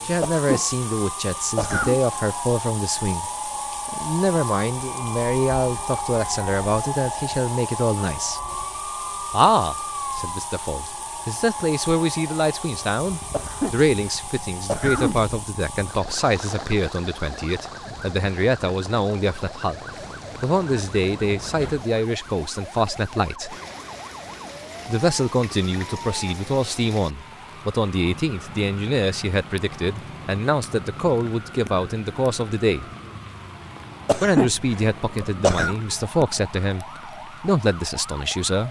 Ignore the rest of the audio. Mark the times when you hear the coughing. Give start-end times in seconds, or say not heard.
0.2-2.0, 13.3-15.2, 34.0-35.8.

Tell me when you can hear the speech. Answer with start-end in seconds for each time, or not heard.
0.1-8.4, 9.3-19.8, 20.4-23.6, 24.9-32.9, 34.2-38.6.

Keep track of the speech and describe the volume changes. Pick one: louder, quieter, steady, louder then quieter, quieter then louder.
steady.